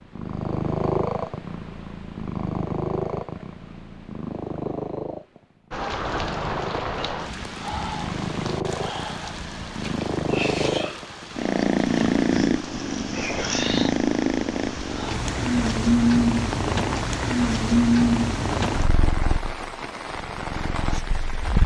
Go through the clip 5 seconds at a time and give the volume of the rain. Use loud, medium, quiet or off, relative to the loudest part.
off, loud, loud, loud, loud.